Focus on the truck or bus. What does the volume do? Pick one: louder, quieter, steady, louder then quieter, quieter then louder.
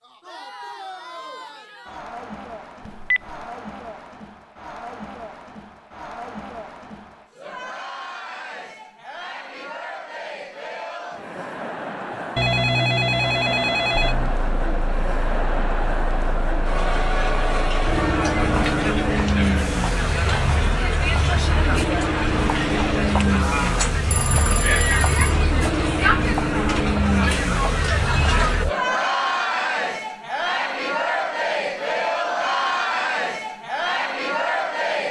louder.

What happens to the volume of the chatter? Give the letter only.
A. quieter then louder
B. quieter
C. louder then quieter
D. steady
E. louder
E.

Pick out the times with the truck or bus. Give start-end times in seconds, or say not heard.
13.9-28.8.